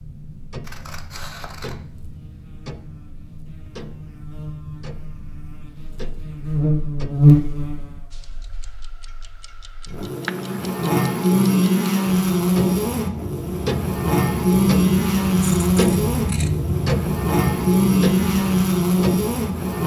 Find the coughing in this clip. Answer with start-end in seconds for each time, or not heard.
not heard.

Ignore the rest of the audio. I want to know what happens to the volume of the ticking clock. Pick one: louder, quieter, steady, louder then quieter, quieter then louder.
louder.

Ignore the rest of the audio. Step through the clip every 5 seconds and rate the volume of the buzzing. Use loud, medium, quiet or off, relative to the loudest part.
quiet, loud, loud, loud.